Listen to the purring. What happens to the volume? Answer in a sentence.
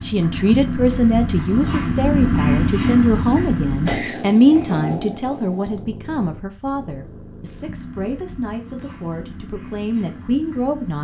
The loudness of the purring goes down.